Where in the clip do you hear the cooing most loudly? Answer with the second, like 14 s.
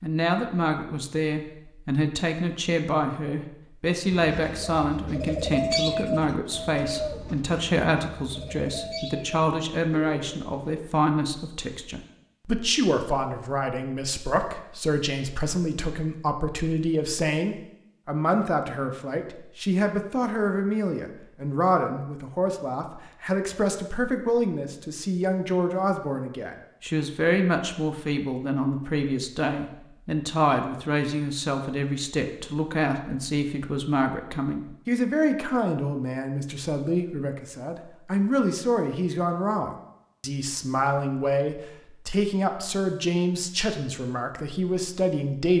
6 s.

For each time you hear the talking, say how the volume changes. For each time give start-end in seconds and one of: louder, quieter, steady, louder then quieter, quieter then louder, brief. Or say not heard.
0.0-45.5 steady.